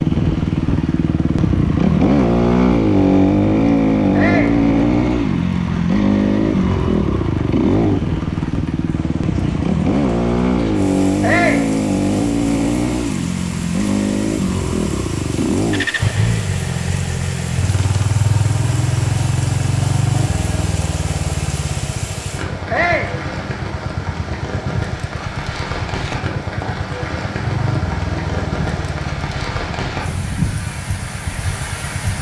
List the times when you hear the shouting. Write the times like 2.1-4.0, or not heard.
4.1-4.6, 11.2-11.7, 22.7-23.1.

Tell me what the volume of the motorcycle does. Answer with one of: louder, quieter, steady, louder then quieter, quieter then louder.
quieter.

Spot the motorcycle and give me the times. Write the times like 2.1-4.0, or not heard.
0.0-32.1.